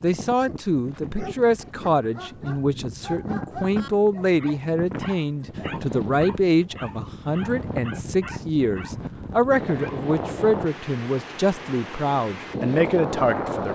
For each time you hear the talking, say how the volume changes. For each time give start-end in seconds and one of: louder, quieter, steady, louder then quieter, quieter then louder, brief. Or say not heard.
0.0-13.7 steady.